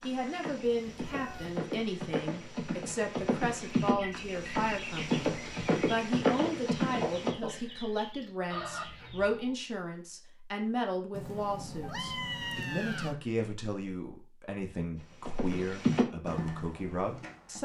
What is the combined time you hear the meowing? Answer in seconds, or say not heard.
3 s.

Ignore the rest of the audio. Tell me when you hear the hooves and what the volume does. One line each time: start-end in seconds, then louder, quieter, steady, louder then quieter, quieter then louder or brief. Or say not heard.
0.0-7.3 louder
14.9-17.6 brief.